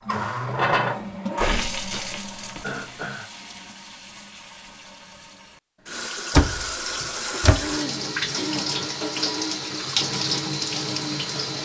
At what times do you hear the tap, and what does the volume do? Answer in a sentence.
You can hear the tap from 0.0 to 11.6 s, getting quieter then louder.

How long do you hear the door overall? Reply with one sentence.
You can hear the door for 3 seconds altogether.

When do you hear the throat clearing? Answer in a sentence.
You can hear the throat clearing from 2.6 to 3.3 s and from 6.9 to 8.7 s.